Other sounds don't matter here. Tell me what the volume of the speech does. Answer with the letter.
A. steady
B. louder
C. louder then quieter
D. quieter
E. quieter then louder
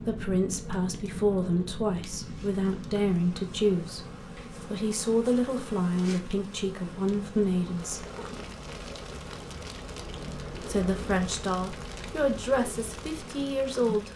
A.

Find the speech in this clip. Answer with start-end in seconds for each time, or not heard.
0.0-8.1, 10.5-14.1.